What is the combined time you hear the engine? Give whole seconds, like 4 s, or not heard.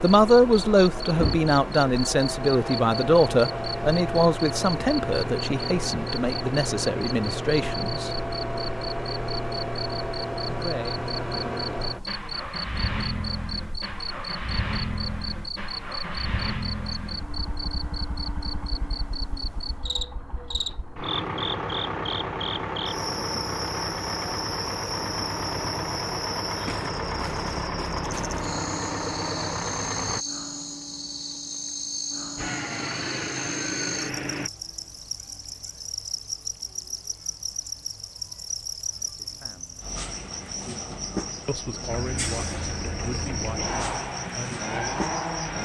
36 s.